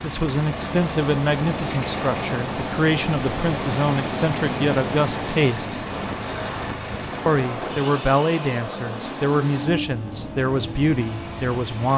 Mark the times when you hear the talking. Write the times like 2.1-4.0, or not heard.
0.0-5.8, 7.2-11.9.